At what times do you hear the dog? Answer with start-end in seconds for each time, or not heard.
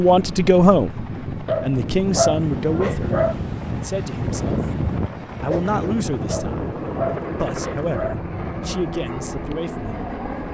1.4-3.4, 6.2-8.2.